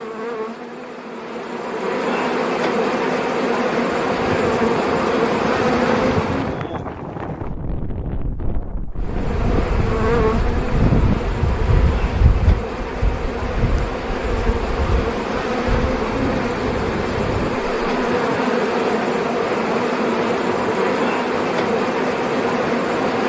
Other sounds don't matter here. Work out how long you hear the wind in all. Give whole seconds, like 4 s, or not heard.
19 s.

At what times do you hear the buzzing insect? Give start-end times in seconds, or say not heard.
0.0-6.7, 9.0-23.2.